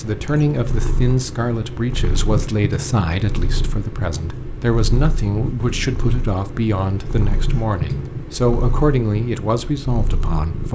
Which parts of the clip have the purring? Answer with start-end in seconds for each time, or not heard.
0.0-10.7.